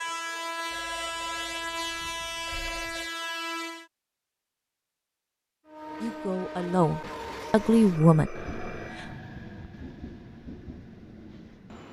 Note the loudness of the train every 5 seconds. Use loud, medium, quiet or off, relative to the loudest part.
loud, medium, quiet.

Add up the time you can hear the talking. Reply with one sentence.
You can hear the talking for 3 seconds altogether.